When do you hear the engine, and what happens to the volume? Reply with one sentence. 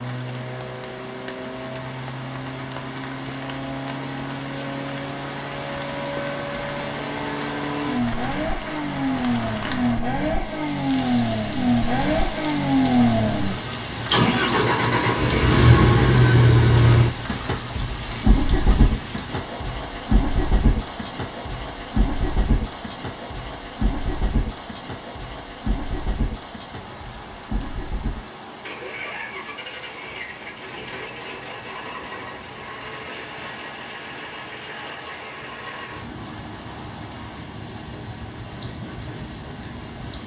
The engine can be heard from 0.0 to 40.2 s, getting louder then quieter.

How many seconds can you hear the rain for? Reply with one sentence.
The rain can be heard for 40 seconds in total.